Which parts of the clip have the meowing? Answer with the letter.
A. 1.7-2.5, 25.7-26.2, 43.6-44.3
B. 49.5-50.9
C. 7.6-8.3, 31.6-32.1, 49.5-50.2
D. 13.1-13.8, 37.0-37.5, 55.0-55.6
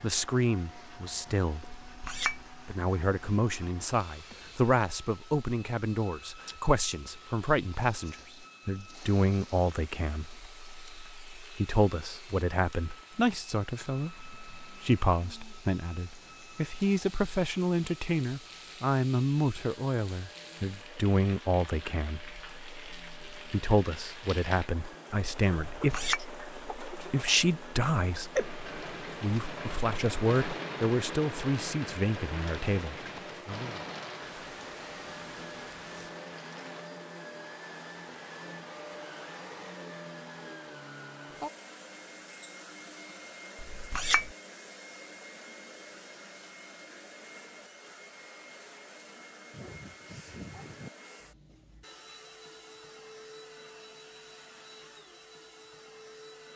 B.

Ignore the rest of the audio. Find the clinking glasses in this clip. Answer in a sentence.
You can hear the clinking glasses from 1.7 to 2.5 s, from 25.7 to 26.2 s and from 43.6 to 44.3 s.